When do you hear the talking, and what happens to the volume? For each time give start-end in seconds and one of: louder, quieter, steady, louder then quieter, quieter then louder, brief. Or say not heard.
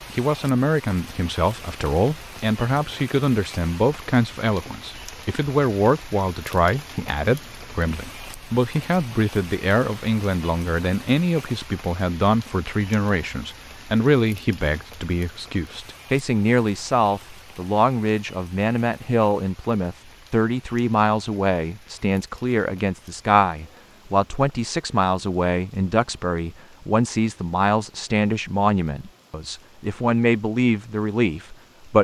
0.1-32.0 steady.